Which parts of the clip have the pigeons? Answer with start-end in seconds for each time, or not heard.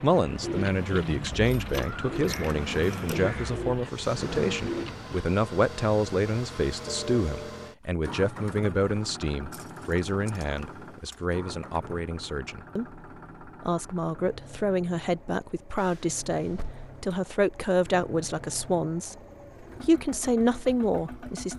0.0-5.2.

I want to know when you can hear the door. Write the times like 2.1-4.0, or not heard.
not heard.